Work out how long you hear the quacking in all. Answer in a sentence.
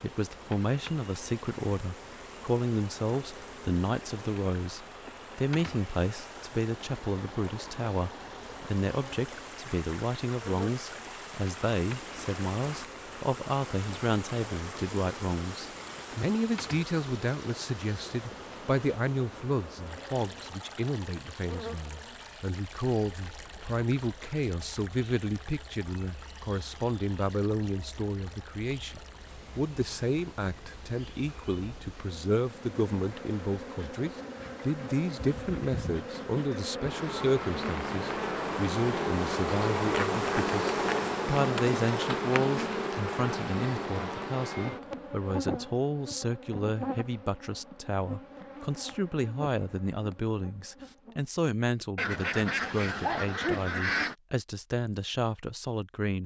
You can hear the quacking for 2 seconds altogether.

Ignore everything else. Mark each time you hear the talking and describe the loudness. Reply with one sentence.
The talking can be heard from 0.0 to 56.2 s, at a steady volume.